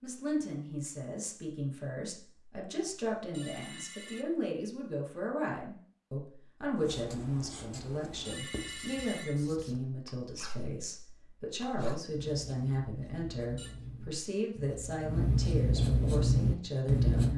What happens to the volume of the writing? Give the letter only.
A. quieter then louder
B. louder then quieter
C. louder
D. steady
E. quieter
C.